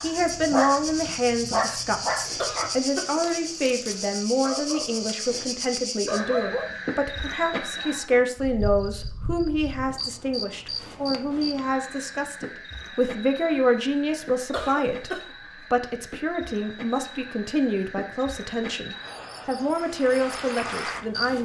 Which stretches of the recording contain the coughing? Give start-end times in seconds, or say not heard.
2.4-3.5, 7.5-8.6, 14.5-15.3.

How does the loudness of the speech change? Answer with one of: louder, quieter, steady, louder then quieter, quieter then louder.
steady.